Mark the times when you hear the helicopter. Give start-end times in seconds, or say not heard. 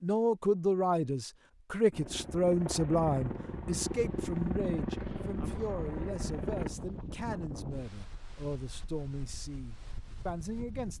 1.9-6.7.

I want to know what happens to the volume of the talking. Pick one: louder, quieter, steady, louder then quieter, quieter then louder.
quieter.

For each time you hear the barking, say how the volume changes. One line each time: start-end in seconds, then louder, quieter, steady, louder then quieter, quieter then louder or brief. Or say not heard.
not heard.